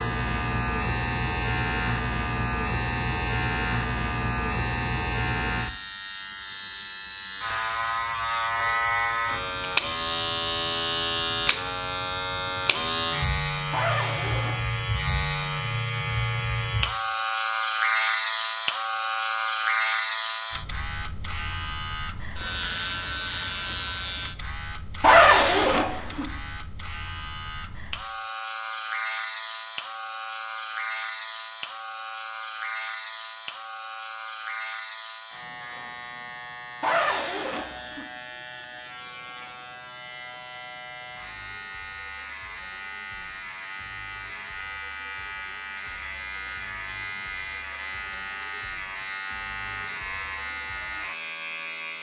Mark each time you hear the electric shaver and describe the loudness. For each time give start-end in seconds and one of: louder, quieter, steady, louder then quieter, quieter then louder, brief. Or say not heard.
0.0-51.9 quieter.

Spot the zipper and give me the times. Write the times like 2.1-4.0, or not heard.
13.7-14.7, 25.0-26.2, 36.8-38.0.